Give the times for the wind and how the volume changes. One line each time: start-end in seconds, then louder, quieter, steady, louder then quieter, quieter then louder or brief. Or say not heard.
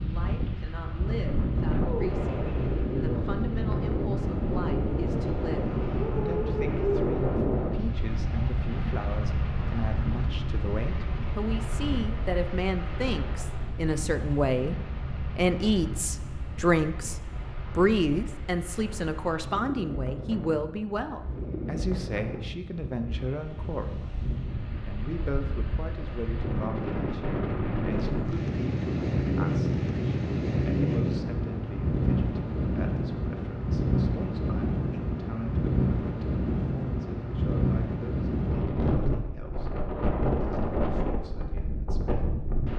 0.0-42.7 quieter then louder.